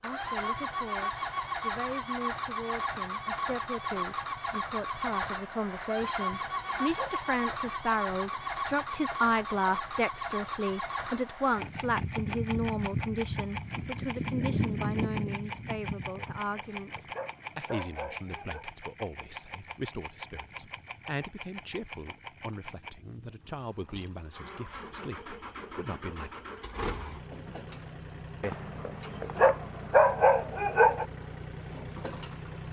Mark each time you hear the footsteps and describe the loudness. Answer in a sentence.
You can't hear the footsteps here.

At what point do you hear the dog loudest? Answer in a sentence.
The loudest moment of the dog is at 30 seconds.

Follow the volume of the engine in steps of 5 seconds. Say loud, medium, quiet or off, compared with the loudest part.
loud, loud, loud, medium, quiet, medium, medium.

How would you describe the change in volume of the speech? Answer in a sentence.
The volume of the speech goes up, then down.